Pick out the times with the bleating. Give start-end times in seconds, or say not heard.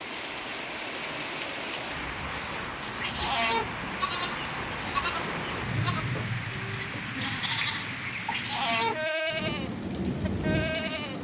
3.7-11.1.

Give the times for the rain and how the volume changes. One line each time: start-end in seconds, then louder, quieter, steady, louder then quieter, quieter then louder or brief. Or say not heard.
0.0-11.1 steady.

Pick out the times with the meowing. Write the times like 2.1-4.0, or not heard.
3.0-3.8, 8.3-9.1.